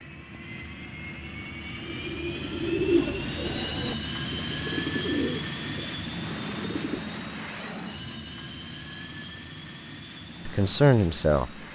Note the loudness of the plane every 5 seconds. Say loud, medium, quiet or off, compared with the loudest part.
loud, loud, medium.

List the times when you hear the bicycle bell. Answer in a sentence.
You can hear the bicycle bell from 3.5 to 4.1 s.